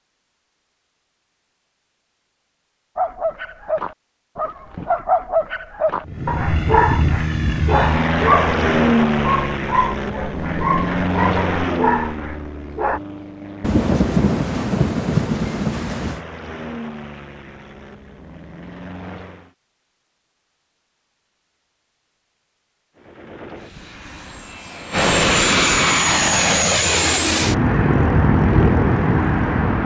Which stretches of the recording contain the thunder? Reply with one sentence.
The thunder can be heard from 13.6 to 16.2 s.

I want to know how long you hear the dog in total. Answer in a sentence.
You can hear the dog for 10 seconds altogether.